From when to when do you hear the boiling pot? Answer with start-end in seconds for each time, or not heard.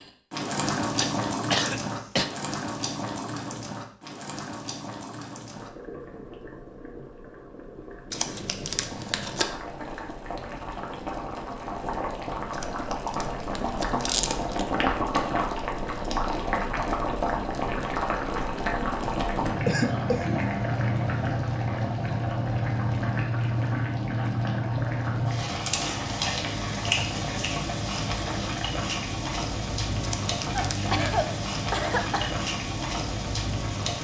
0.0-33.9.